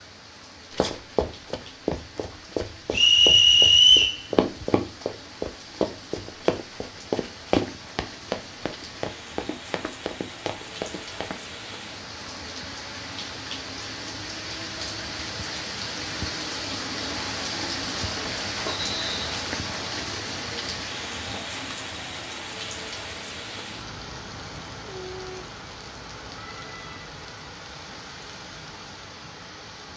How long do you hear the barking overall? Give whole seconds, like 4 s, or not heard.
not heard.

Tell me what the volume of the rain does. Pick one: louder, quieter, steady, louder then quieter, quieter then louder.
louder then quieter.